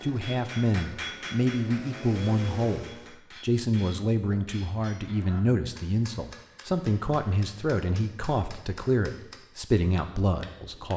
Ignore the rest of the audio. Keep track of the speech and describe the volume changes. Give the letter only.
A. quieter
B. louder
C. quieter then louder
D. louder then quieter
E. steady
E.